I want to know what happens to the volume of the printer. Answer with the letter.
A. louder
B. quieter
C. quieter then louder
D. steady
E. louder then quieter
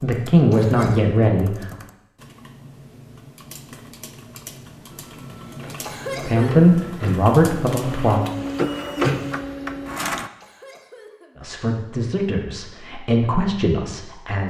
A.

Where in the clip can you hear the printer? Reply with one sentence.
The printer can be heard from 4.9 to 10.3 s.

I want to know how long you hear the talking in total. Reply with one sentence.
You can hear the talking for 7 seconds altogether.